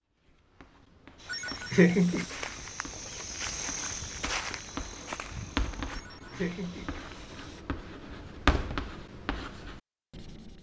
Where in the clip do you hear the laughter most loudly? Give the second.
2 s.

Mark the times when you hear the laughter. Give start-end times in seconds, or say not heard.
1.3-2.2, 5.9-6.9.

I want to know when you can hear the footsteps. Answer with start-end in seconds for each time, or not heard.
1.1-7.7.